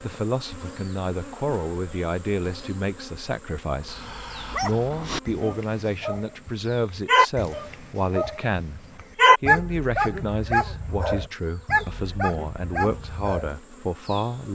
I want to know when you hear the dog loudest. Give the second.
9 s.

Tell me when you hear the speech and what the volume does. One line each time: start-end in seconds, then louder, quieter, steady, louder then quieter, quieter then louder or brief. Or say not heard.
0.0-14.4 steady.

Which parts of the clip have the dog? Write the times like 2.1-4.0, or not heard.
3.8-13.5.